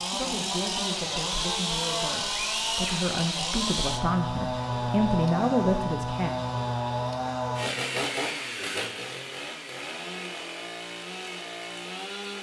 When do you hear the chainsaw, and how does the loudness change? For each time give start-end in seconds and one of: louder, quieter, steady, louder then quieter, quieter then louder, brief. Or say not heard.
0.0-12.3 quieter.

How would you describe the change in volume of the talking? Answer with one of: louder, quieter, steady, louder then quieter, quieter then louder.
louder.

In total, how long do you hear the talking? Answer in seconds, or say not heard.
6 s.